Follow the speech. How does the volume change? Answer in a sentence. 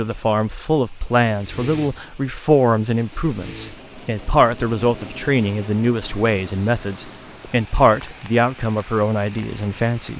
The volume of the speech stays about the same.